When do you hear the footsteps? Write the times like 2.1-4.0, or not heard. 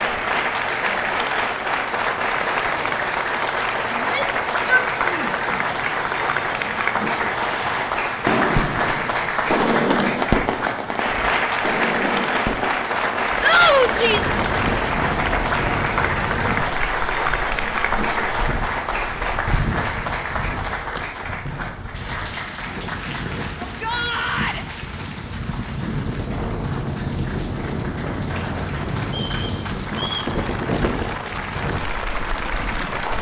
not heard.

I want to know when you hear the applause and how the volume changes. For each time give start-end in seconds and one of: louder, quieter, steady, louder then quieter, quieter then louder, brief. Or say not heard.
0.0-33.1 quieter.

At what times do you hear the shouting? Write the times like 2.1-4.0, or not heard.
4.0-5.4, 13.4-14.3, 23.6-24.6.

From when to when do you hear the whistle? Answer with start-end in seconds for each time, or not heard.
29.1-30.3.